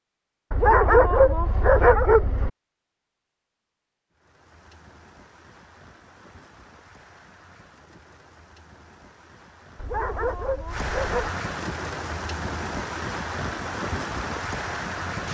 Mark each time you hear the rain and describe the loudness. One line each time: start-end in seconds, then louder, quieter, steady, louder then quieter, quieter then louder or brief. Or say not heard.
4.1-15.2 louder.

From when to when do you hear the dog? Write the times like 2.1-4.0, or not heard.
0.5-2.5, 9.8-11.3.